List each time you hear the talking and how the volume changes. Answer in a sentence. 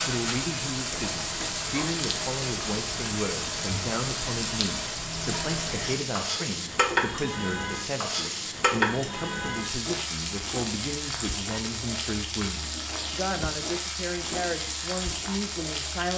The talking can be heard from 0.1 to 16.1 s, at a steady volume.